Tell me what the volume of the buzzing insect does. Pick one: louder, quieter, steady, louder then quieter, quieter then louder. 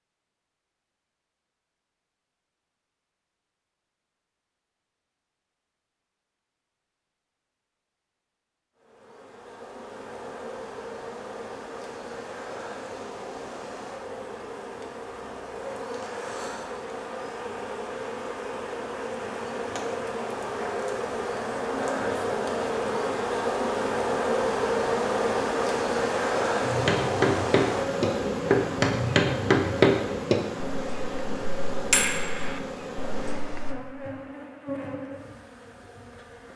louder then quieter.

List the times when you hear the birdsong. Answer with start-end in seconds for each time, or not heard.
not heard.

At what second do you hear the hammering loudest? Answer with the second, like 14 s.
30 s.